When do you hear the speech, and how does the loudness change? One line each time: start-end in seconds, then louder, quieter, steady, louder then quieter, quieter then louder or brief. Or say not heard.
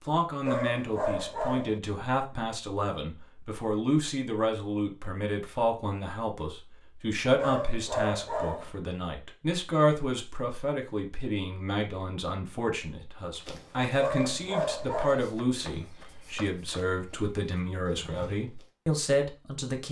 0.1-19.8 steady.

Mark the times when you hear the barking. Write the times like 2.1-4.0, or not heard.
0.5-1.8, 7.3-8.7, 14.0-15.3.